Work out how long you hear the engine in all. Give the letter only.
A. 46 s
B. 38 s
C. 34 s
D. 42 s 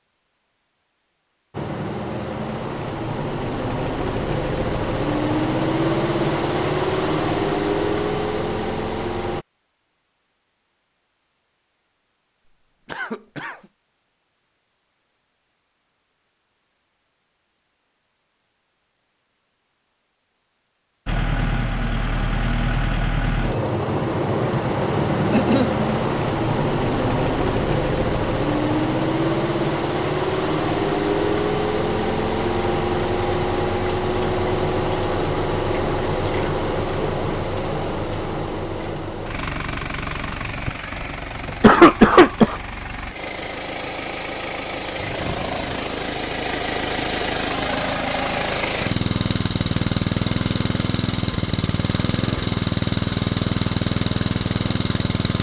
D.